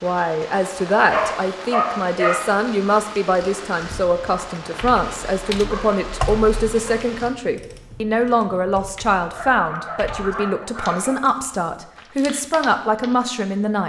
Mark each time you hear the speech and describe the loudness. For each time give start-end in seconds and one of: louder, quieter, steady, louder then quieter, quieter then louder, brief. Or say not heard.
0.0-13.8 steady.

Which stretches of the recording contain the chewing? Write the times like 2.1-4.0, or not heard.
not heard.